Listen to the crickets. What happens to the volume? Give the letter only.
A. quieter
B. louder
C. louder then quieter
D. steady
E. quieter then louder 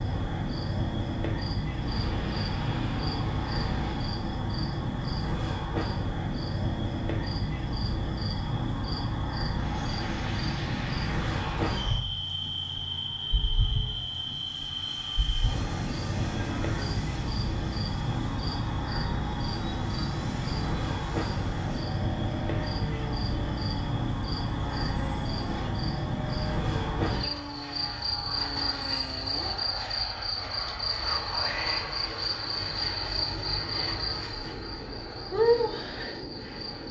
D.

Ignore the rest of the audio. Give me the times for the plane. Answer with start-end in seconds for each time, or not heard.
1.7-4.2, 9.5-36.8.